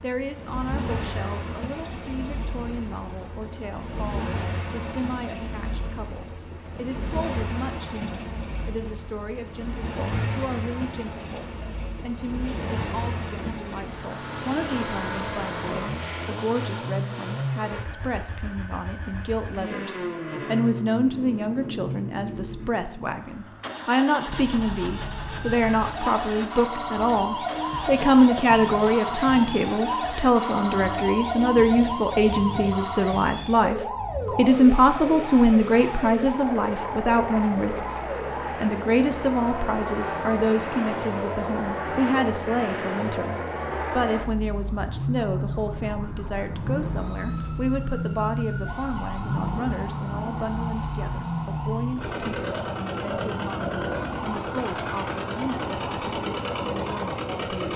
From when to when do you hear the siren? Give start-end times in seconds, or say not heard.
24.2-57.7.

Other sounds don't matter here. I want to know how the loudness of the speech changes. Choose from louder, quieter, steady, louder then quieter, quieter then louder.
louder then quieter.